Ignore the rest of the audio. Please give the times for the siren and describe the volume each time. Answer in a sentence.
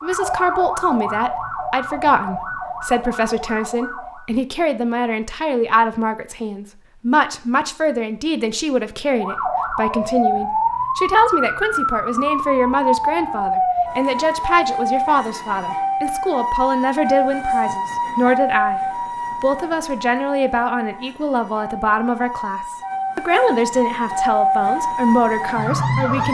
The siren can be heard from 0.0 to 4.3 s, getting quieter; and from 9.1 to 26.2 s, getting quieter then louder.